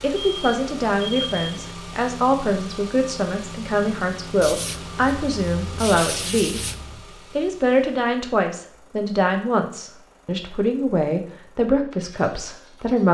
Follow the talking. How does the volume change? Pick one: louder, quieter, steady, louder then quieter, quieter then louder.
steady.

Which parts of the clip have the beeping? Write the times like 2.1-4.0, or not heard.
0.2-1.6.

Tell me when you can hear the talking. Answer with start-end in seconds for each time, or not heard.
0.0-6.6, 7.3-13.0.